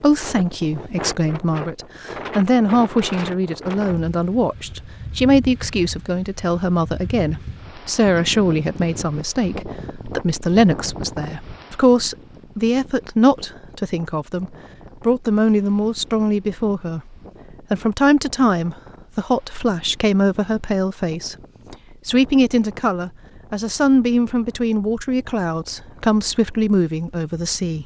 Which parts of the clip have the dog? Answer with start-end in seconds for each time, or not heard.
not heard.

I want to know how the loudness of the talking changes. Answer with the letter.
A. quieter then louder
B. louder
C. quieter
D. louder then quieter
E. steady
E.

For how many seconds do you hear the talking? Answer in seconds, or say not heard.
28 s.